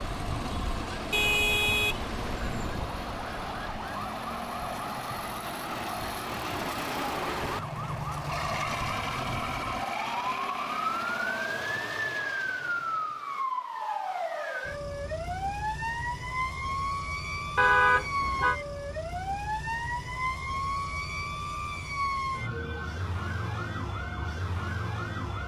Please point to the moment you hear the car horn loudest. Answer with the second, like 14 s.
18 s.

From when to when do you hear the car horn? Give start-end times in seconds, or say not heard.
1.1-2.9, 17.6-18.6.